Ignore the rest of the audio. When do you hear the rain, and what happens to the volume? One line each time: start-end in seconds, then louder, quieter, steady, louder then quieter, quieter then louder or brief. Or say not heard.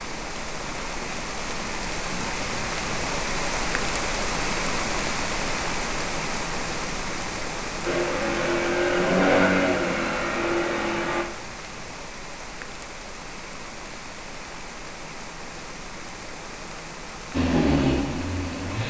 0.0-18.8 quieter.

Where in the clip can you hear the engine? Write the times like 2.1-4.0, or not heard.
7.8-11.2, 17.3-18.8.